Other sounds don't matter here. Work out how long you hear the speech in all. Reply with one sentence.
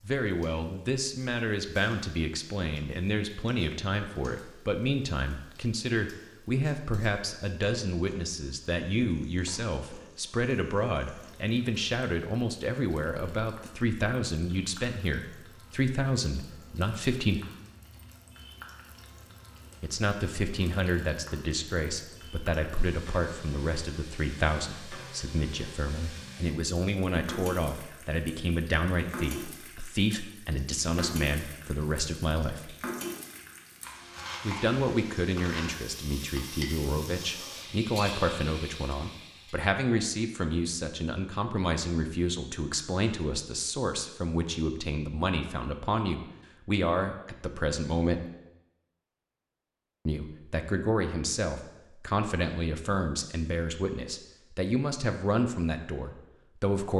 The speech can be heard for 51 seconds in total.